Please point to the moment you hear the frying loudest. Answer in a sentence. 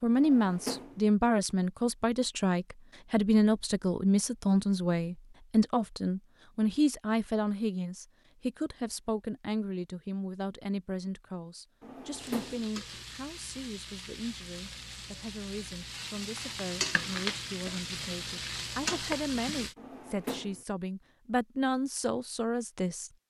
The loudest moment of the frying is at 17 seconds.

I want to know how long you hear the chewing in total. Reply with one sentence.
The chewing can't be heard in this clip.